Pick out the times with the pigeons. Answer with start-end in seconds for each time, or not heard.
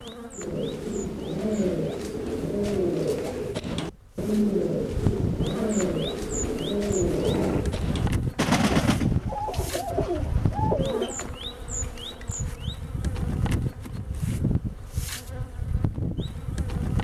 0.3-11.2.